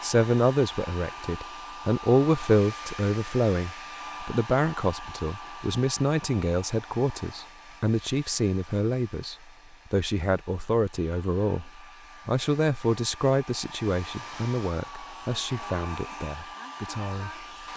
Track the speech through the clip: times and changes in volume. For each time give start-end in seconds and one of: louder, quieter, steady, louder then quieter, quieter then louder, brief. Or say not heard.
0.0-17.7 quieter.